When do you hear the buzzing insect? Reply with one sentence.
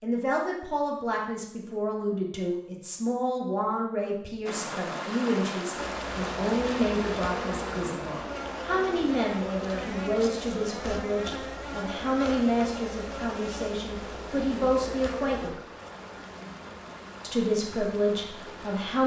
The buzzing insect can be heard from 5.8 to 19.0 s.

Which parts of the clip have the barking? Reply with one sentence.
The barking can't be heard in this clip.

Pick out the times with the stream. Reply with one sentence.
The stream can be heard from 4.5 to 19.0 s.